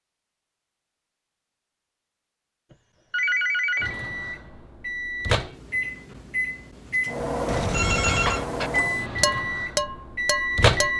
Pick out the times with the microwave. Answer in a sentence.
You can hear the microwave from 3.8 to 10.9 s.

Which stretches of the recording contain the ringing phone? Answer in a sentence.
You can hear the ringing phone from 2.7 to 4.0 s and from 7.5 to 8.4 s.